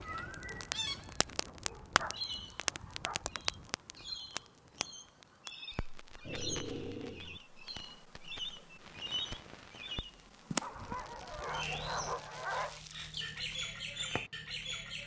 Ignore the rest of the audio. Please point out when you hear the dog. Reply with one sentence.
You can hear the dog from 1.4 to 3.2 s, from 6.2 to 7.4 s and from 10.6 to 12.8 s.